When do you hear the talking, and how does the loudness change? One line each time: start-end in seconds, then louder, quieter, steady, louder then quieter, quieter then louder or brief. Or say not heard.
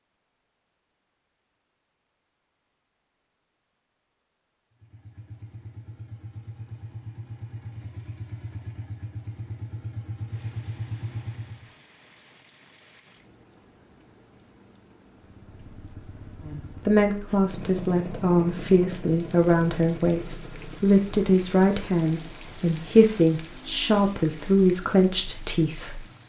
16.4-26.0 steady.